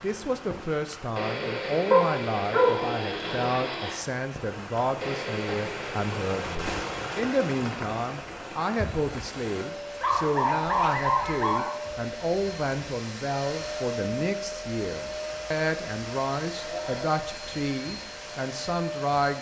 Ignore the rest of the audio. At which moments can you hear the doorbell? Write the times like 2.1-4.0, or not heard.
not heard.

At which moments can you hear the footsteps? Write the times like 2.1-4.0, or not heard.
not heard.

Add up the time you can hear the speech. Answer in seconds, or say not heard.
19 s.